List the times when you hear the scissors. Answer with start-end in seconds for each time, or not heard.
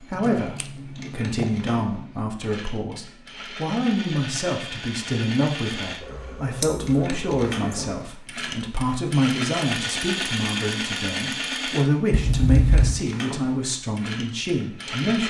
0.1-1.6, 6.0-8.0, 12.1-13.0.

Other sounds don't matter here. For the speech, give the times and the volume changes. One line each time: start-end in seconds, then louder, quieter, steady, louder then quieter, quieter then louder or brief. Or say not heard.
0.0-15.2 steady.